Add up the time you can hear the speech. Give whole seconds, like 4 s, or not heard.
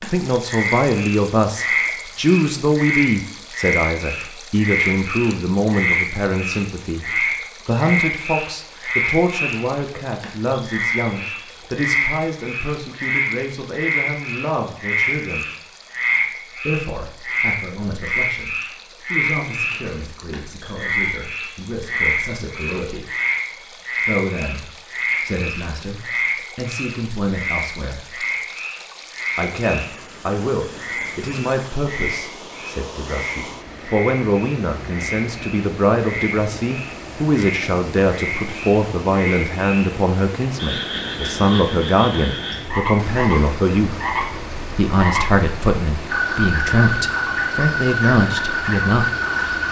45 s.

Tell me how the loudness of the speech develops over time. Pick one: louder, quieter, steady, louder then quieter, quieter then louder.
quieter then louder.